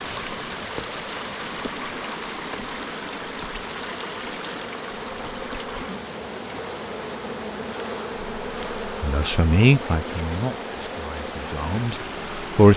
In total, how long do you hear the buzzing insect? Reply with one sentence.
The buzzing insect can be heard for 13 seconds in total.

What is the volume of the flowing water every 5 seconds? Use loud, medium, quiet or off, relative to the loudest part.
loud, medium, loud.